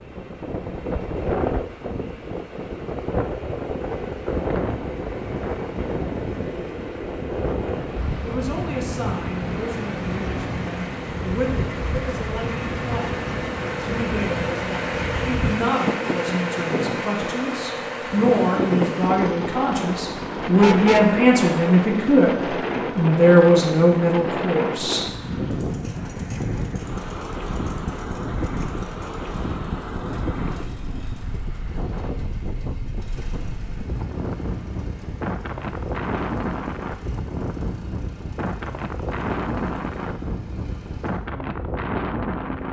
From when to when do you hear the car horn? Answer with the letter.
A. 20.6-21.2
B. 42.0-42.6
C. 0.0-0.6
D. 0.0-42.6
A.